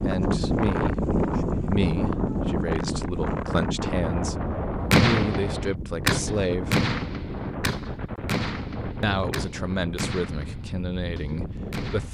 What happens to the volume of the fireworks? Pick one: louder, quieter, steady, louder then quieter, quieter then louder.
quieter.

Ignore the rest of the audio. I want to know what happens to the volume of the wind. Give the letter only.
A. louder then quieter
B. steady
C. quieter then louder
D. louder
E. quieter
E.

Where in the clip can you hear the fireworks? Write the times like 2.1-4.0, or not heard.
4.9-12.0.